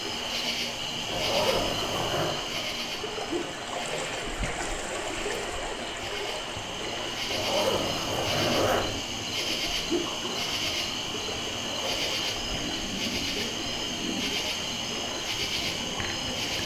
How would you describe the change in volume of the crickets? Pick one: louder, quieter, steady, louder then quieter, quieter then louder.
quieter then louder.